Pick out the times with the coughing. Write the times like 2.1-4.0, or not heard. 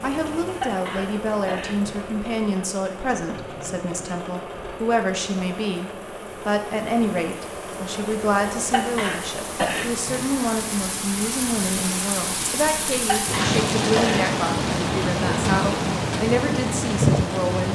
0.6-1.8, 8.7-10.2, 13.1-14.3.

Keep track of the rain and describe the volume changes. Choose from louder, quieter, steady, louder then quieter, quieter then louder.
louder.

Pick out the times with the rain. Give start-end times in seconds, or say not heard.
0.0-17.7.